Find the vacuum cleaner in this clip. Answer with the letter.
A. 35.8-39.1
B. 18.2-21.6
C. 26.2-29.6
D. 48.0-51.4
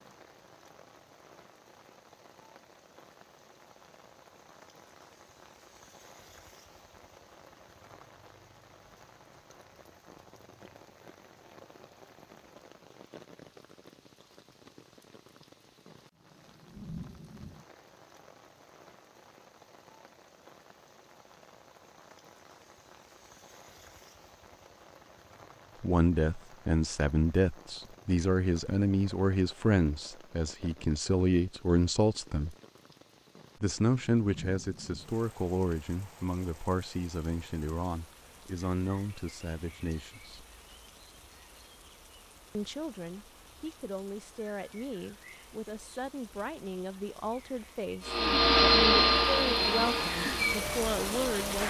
D.